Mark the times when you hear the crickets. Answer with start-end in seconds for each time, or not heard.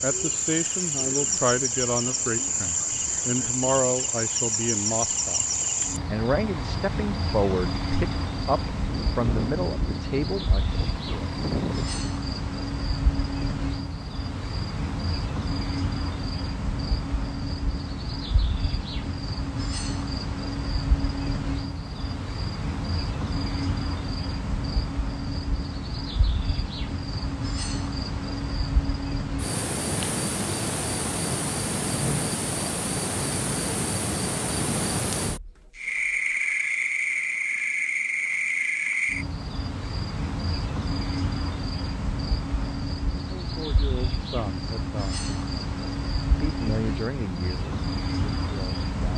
0.0-49.1.